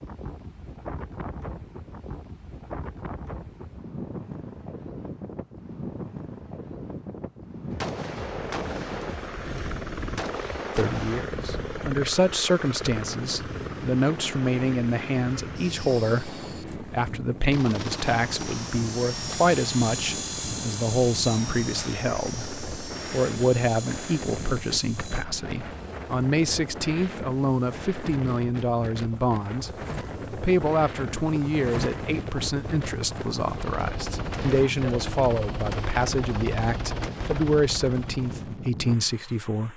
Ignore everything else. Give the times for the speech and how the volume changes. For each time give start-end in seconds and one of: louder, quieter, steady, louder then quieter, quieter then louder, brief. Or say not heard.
10.8-39.7 steady.